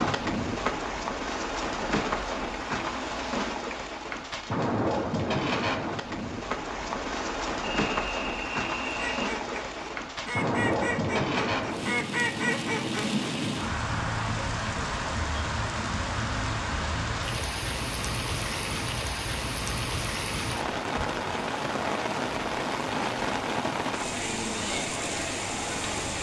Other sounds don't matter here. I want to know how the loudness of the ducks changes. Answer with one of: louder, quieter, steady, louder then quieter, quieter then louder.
louder.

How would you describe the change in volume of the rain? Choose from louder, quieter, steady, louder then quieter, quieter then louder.
steady.